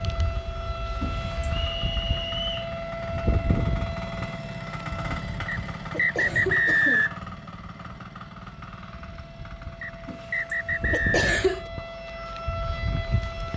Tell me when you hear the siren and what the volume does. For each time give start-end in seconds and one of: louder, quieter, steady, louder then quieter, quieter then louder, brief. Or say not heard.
0.0-13.5 quieter then louder.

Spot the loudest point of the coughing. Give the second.
11 s.